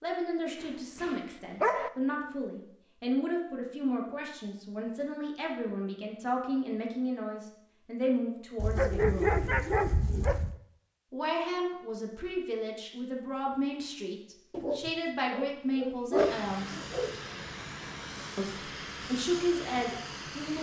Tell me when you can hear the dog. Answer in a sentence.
You can hear the dog from 0.6 to 1.9 s, from 8.6 to 10.6 s and from 14.5 to 17.1 s.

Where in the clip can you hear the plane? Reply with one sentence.
You can hear the plane from 16.1 to 20.5 s.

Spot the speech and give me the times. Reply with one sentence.
You can hear the speech from 0.0 to 9.4 s, from 11.1 to 16.8 s and from 18.4 to 20.5 s.